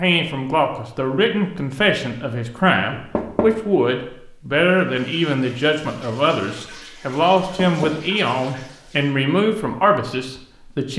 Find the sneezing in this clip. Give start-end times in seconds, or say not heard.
not heard.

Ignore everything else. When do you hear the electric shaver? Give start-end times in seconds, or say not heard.
not heard.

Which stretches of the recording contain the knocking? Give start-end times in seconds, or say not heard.
2.9-3.6, 7.5-8.1.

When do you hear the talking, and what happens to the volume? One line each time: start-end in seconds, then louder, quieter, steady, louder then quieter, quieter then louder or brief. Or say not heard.
0.0-10.9 steady.